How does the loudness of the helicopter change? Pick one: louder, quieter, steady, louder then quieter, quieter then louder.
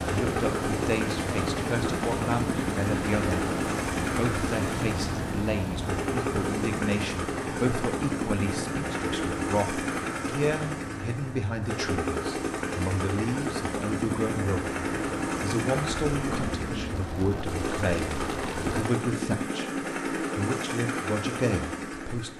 steady.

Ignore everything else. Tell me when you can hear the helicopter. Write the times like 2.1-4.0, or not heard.
0.0-22.3.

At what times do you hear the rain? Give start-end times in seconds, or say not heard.
0.0-18.9.